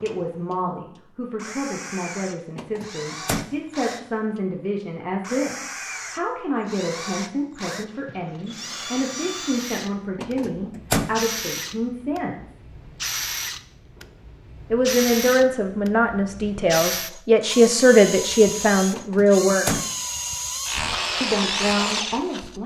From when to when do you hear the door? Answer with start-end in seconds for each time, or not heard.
2.5-3.5, 10.2-11.2, 18.9-19.9.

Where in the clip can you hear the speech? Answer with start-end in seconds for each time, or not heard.
0.0-12.6, 14.7-19.8, 21.2-22.6.